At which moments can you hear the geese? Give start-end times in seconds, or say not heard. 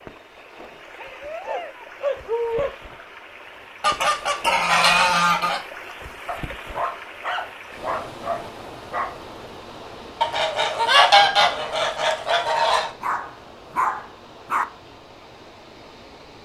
3.8-5.6, 10.2-12.9.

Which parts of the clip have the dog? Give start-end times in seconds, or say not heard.
0.9-2.8, 6.2-9.2, 13.0-14.7.